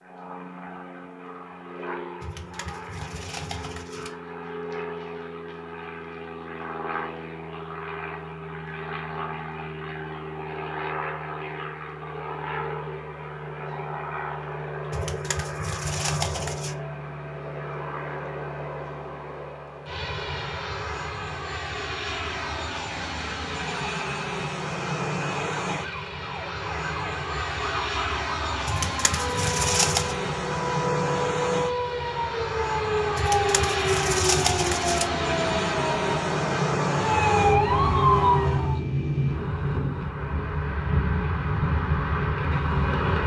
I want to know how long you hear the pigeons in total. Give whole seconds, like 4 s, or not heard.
7 s.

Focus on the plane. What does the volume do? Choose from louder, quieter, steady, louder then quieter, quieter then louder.
louder.